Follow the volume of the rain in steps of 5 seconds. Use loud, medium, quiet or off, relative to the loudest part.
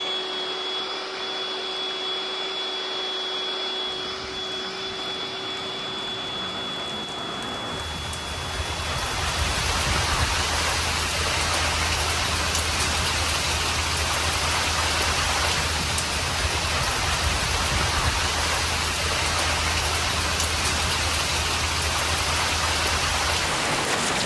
quiet, medium, loud, loud, loud.